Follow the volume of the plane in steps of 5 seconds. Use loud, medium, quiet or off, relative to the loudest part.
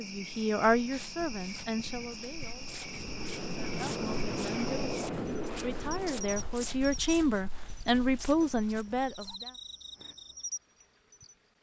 loud, loud, off.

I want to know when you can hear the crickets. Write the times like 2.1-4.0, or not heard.
0.0-11.3.